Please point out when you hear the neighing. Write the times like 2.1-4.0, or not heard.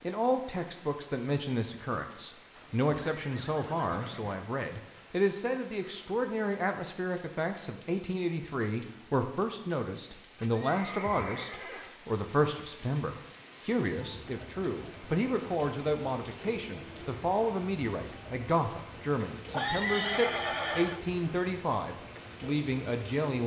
2.5-4.4, 10.3-11.9, 19.5-21.0.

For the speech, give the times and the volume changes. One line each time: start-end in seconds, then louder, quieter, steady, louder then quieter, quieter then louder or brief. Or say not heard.
0.0-23.4 steady.